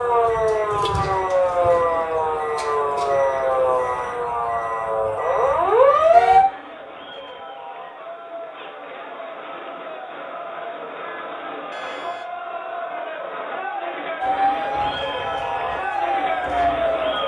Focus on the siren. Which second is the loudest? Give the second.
6 s.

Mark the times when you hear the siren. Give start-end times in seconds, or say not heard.
0.0-6.5, 14.2-17.2.